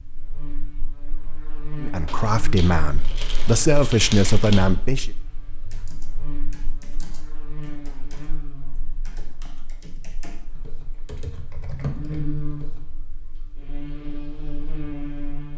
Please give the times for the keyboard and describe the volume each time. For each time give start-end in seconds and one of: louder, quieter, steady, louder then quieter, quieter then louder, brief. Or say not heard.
5.6-12.8 louder.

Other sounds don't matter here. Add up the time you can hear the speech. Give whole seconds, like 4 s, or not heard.
3 s.